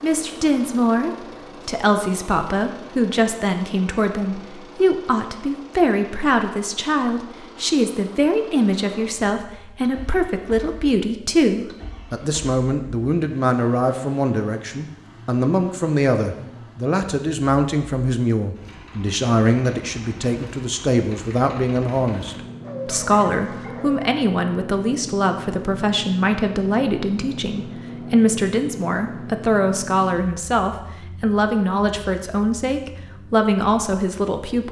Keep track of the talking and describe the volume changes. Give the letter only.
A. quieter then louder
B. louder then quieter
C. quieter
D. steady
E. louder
D.